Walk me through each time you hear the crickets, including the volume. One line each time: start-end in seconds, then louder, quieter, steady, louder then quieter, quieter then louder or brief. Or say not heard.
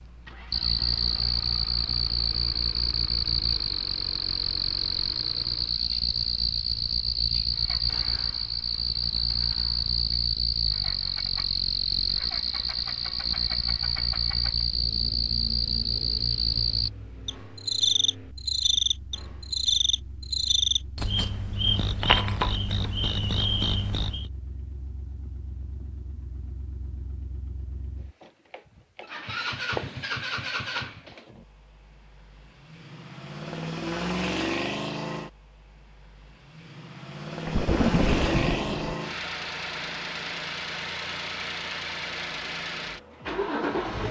0.0-24.3 steady.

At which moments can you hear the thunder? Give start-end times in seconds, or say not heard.
37.5-39.0.